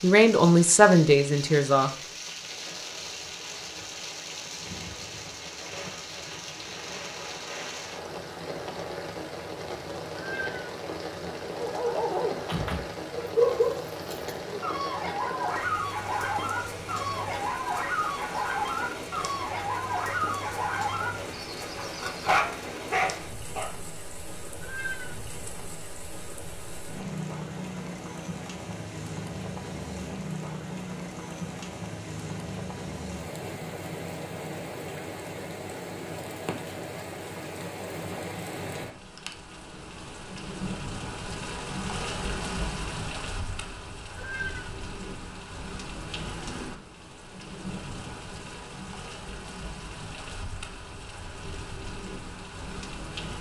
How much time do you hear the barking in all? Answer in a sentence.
You can hear the barking for 12 seconds altogether.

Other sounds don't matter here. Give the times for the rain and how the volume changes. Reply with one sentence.
The rain can be heard from 0.0 to 53.3 s, at a steady volume.